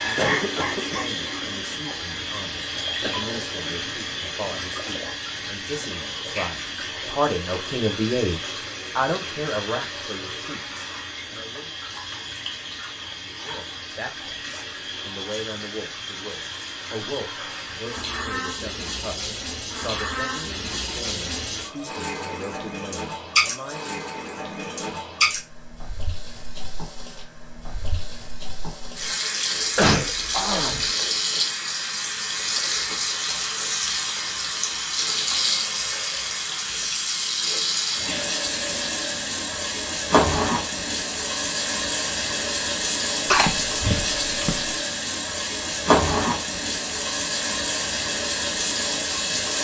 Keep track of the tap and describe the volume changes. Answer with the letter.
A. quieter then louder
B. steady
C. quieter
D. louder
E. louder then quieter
D.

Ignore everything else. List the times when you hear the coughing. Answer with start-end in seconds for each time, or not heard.
0.1-1.1, 29.8-30.9, 43.3-44.6.